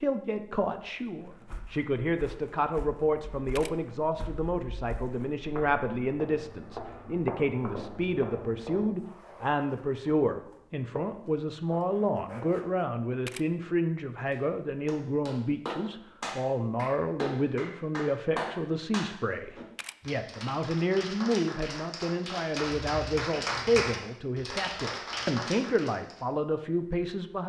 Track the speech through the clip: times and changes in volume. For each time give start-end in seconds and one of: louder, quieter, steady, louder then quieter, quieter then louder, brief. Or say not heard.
0.0-27.4 steady.